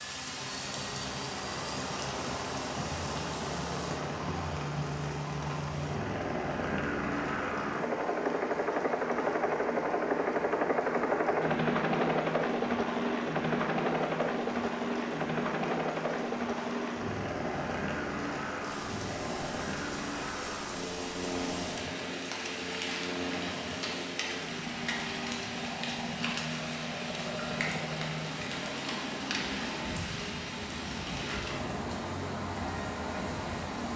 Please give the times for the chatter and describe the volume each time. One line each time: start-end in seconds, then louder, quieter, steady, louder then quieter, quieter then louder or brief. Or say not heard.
not heard.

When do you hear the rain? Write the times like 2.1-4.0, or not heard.
0.0-33.9.